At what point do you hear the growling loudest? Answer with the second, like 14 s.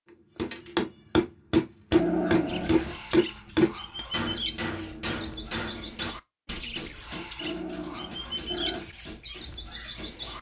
2 s.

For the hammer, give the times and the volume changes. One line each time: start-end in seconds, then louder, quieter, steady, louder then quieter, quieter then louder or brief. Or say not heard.
0.3-10.3 quieter.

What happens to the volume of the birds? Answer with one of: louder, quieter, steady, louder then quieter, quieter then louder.
steady.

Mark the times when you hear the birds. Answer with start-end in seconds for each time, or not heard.
2.5-10.3.